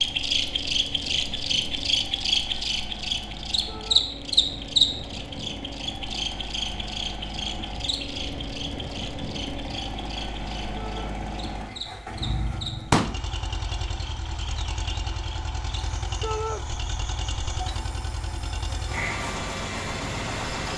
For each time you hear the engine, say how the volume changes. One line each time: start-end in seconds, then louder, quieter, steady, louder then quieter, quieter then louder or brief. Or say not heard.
0.0-20.7 louder.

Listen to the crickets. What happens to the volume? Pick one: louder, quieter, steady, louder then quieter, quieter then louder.
quieter.